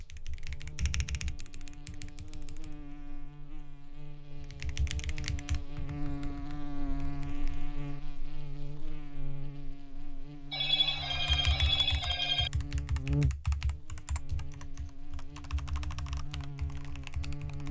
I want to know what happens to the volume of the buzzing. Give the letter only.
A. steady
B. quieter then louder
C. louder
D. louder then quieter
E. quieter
D.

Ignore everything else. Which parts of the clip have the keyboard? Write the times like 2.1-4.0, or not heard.
0.0-3.0, 4.3-7.7, 11.1-17.6.